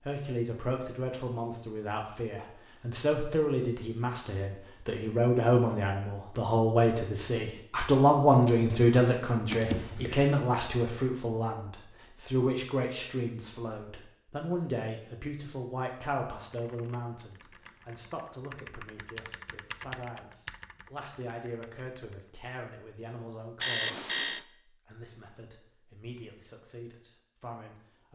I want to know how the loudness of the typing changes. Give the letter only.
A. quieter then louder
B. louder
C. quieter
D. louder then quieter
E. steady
D.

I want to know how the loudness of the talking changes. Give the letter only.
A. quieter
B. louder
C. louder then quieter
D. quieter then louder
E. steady
C.